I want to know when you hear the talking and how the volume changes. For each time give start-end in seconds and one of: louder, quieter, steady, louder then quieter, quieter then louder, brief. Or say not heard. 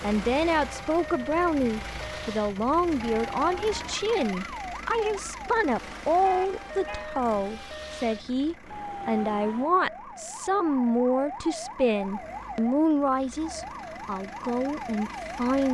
0.0-15.6 steady.